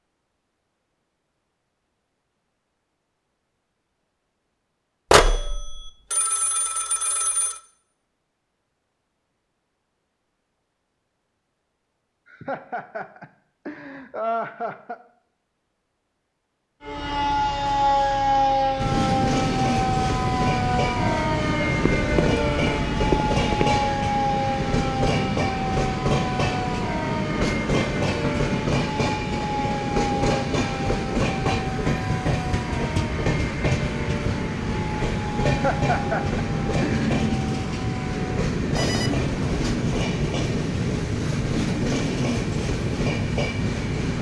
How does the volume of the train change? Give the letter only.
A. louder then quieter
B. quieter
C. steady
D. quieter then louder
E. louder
C.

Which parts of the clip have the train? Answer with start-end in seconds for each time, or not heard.
18.8-44.1.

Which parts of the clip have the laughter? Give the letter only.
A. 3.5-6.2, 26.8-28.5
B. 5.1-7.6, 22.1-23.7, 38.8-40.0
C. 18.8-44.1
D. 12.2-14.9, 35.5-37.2
D.